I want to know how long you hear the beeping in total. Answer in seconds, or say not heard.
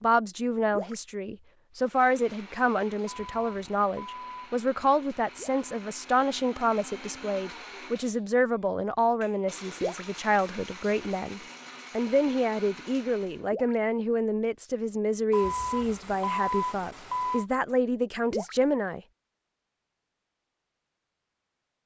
4 s.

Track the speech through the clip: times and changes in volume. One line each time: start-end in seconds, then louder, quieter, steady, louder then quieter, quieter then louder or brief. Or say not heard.
0.0-19.0 steady.